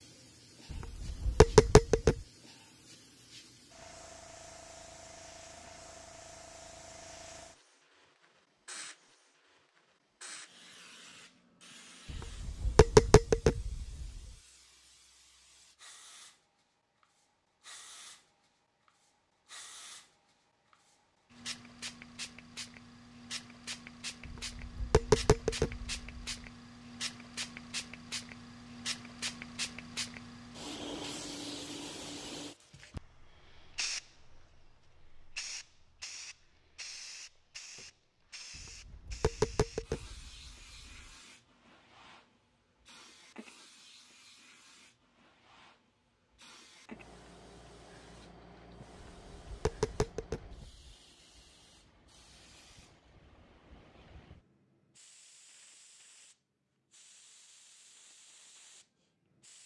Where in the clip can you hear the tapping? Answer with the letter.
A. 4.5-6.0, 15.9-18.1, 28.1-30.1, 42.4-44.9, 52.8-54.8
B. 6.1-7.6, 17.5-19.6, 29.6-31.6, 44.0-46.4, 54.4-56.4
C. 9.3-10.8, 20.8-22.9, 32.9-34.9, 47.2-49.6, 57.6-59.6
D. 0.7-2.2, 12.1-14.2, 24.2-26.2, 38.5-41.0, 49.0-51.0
D.